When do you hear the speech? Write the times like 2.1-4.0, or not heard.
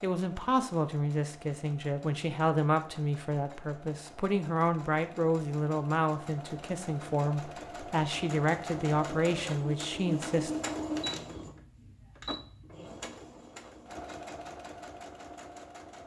0.0-10.5.